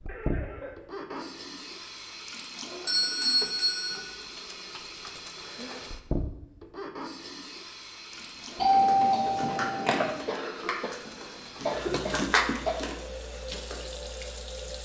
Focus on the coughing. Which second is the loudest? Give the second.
12 s.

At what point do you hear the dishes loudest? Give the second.
12 s.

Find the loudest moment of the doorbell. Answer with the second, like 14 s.
9 s.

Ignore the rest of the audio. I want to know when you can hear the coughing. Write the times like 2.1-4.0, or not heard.
0.1-1.3, 5.3-6.0, 10.2-12.8.